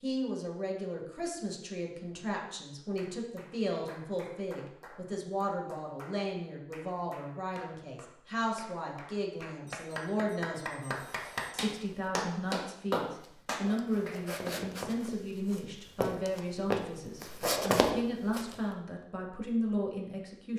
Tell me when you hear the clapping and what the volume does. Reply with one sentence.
The clapping can be heard from 3.0 to 14.5 s, getting louder.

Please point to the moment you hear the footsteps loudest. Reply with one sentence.
The volume of the footsteps peaks at 18 seconds.